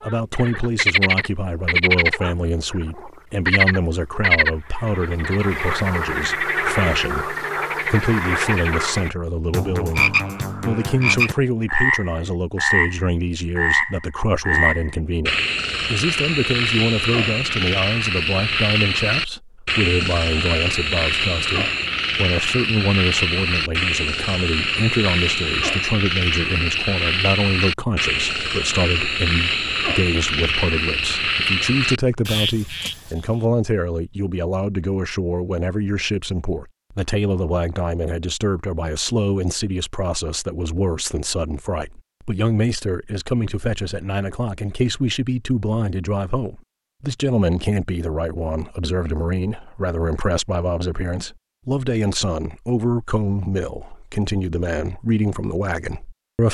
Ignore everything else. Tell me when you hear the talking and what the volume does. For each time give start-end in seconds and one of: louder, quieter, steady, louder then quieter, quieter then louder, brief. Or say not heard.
0.0-56.4 steady.